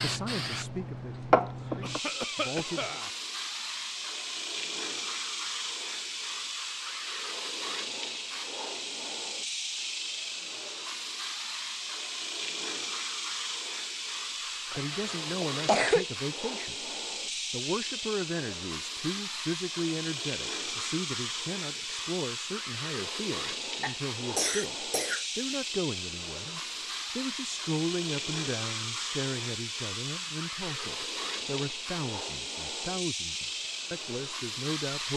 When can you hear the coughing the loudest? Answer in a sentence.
The loudest moment of the coughing is at 16 seconds.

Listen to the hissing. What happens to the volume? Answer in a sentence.
The volume of the hissing stays about the same.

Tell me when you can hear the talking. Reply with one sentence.
You can hear the talking from 0.0 to 3.0 s, from 14.7 to 16.9 s and from 17.5 to 35.1 s.